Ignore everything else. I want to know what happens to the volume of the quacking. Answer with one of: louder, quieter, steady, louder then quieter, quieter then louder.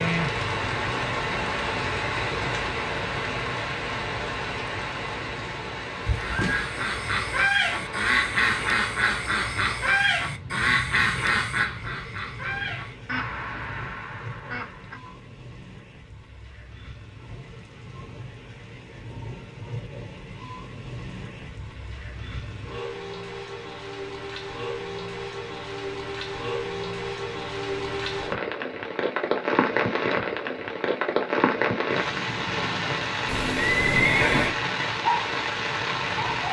quieter.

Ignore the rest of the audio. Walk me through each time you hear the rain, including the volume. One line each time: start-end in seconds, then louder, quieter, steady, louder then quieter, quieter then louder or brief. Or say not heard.
0.0-36.4 quieter then louder.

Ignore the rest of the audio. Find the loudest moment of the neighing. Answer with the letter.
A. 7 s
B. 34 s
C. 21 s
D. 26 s
B.